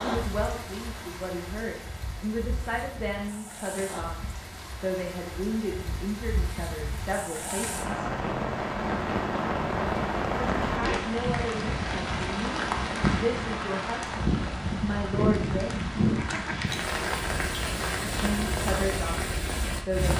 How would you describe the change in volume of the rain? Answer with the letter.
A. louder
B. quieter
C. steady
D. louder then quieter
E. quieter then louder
A.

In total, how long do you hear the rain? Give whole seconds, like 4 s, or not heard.
20 s.